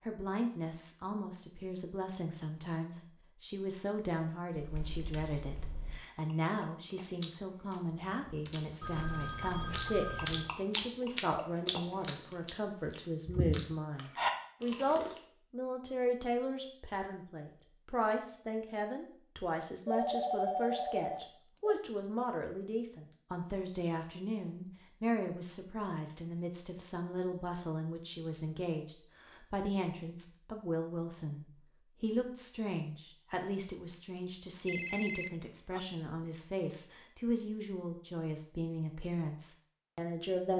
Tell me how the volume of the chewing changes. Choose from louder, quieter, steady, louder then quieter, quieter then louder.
louder.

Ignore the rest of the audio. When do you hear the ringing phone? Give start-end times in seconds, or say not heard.
8.8-10.5, 19.9-21.8, 34.6-35.8.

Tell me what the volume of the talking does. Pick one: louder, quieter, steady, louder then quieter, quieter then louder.
steady.